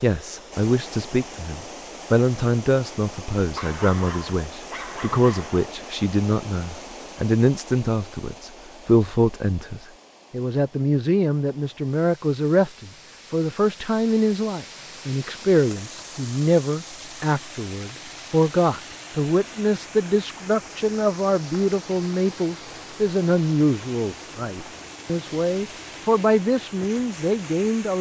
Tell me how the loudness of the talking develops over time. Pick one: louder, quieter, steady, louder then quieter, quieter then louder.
steady.